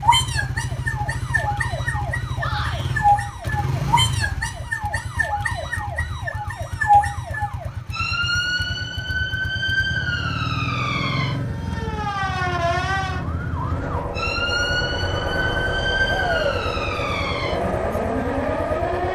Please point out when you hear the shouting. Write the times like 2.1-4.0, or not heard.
2.4-3.0, 16.1-16.6.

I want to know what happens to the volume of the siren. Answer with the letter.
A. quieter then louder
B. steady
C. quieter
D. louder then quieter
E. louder
B.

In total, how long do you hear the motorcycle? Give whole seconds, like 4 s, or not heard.
19 s.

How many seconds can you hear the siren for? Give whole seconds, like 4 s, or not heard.
19 s.